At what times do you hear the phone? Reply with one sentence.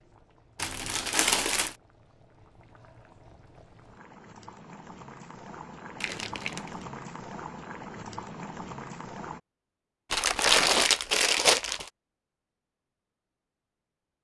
The phone can't be heard in this clip.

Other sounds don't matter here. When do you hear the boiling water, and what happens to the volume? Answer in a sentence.
You can hear the boiling water from 0.0 to 9.4 s, getting louder.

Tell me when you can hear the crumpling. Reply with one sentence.
The crumpling can be heard from 0.6 to 1.8 s, from 6.0 to 6.8 s and from 10.1 to 11.9 s.